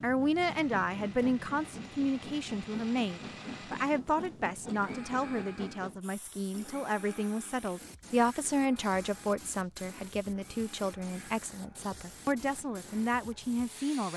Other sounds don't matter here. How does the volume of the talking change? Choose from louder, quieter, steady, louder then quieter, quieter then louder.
steady.